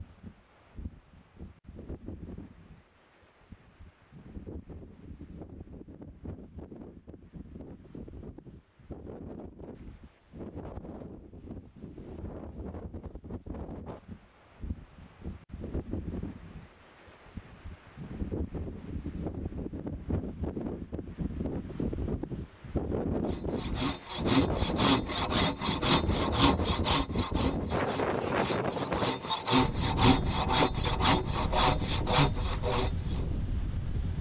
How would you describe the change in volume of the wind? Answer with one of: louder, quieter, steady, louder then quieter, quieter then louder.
louder.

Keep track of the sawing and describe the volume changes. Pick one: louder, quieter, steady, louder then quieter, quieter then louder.
quieter then louder.